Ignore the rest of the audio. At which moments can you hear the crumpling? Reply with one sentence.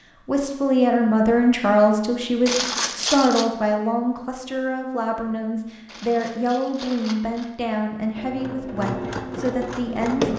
You can hear the crumpling from 2.5 to 3.5 s and from 5.8 to 7.5 s.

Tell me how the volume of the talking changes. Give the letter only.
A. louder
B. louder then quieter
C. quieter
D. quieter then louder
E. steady
C.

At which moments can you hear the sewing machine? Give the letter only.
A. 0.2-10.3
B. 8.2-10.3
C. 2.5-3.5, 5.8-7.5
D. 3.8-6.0
B.